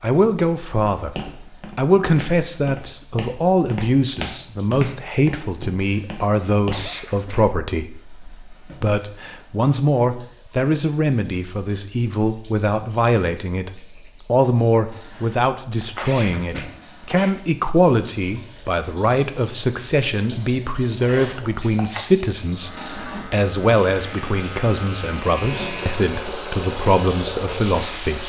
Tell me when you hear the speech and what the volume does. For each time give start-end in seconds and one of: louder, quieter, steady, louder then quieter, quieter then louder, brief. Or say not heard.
0.0-28.2 steady.